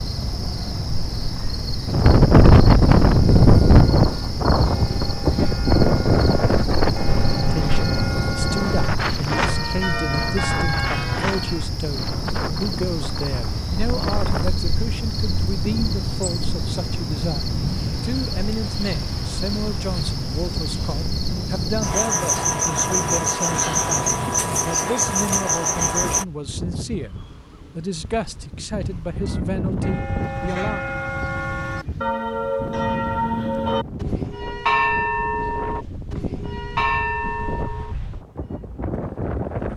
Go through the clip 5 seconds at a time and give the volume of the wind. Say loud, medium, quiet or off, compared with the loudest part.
loud, medium, quiet, quiet, quiet, quiet, quiet, quiet.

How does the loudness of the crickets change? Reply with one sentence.
The volume of the crickets goes up.